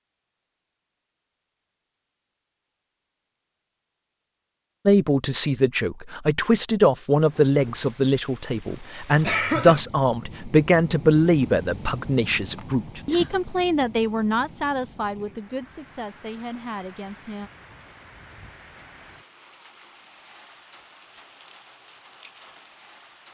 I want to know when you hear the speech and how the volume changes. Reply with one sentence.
The speech can be heard from 4.8 to 17.5 s, getting quieter.